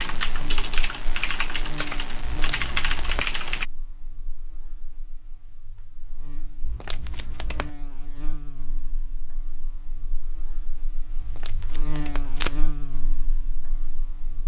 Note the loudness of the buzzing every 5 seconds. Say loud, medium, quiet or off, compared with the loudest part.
loud, medium, loud.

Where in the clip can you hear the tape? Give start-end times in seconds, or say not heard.
2.2-3.2, 6.7-7.7, 11.2-12.6.